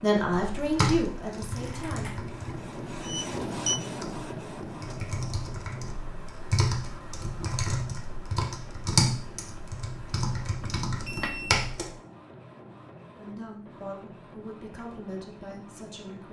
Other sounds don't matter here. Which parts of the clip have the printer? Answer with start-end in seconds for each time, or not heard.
0.0-16.2.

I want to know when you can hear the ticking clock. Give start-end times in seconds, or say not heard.
not heard.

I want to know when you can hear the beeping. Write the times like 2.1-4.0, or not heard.
3.0-3.8, 10.6-11.7.